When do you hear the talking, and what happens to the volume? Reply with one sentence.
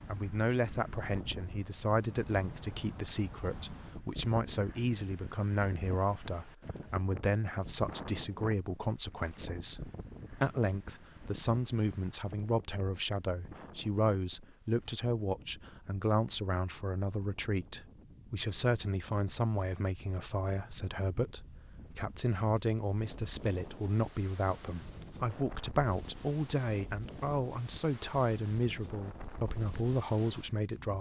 The talking can be heard from 0.1 to 30.9 s, at a steady volume.